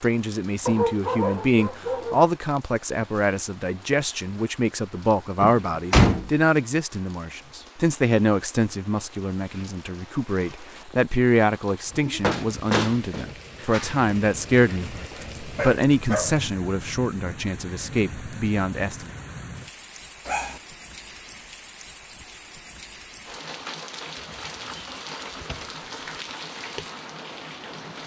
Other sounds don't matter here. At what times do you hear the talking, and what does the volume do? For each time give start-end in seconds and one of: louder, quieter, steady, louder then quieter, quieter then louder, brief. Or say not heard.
0.0-19.1 steady.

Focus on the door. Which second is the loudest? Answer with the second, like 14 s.
6 s.